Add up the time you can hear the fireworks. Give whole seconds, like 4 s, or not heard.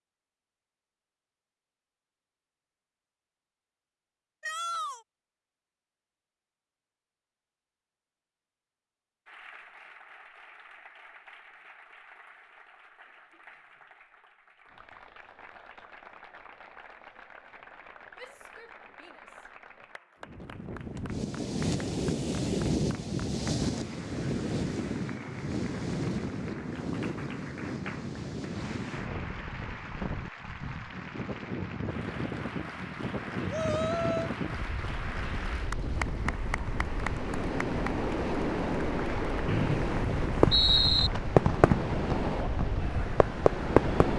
4 s.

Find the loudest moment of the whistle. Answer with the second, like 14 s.
41 s.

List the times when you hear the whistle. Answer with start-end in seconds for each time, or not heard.
39.5-41.1.